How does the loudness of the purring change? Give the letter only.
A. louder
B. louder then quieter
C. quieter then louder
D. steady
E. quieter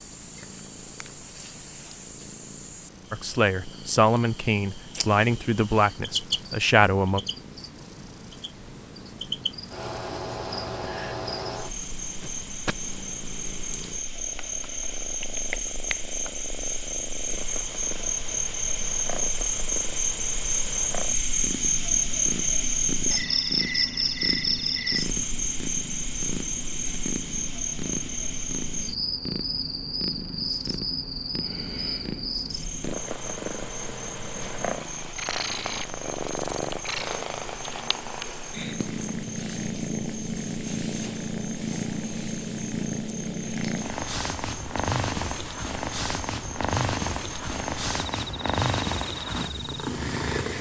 A.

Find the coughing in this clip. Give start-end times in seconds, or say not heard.
12.2-12.9.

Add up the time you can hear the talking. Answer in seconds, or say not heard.
4 s.